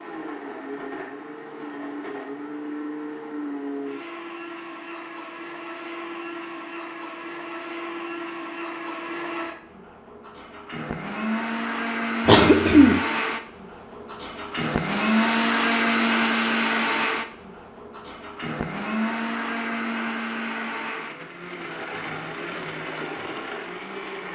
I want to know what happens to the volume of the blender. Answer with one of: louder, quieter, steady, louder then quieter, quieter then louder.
louder then quieter.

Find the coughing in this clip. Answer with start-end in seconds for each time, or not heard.
12.2-13.0.